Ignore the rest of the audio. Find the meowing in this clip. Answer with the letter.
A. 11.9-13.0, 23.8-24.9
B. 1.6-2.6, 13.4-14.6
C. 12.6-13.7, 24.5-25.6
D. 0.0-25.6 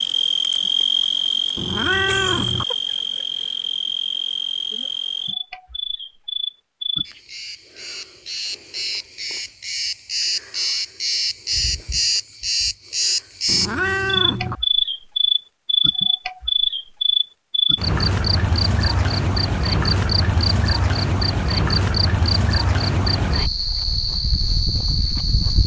B.